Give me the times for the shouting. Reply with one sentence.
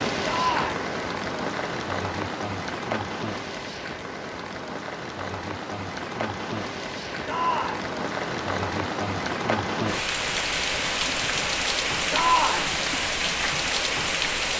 The shouting can be heard from 0.2 to 0.8 s, from 7.2 to 7.9 s and from 12.1 to 12.8 s.